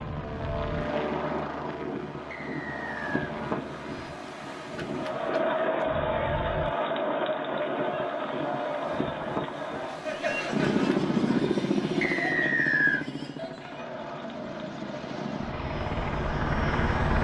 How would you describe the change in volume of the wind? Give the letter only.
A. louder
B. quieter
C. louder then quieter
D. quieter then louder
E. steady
E.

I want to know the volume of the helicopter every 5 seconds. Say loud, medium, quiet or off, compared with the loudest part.
medium, off, loud, loud.